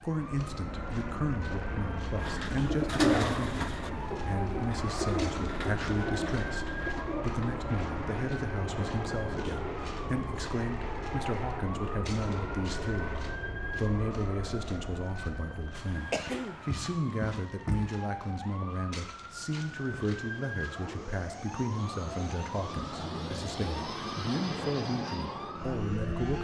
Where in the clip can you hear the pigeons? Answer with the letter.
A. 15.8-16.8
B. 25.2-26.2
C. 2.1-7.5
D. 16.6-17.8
C.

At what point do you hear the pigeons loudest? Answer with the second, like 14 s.
3 s.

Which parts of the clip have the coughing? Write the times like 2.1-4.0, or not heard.
15.8-16.8.